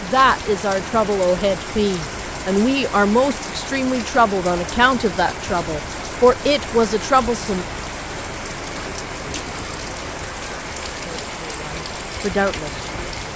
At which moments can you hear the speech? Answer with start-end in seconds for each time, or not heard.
0.0-7.7, 11.3-13.2.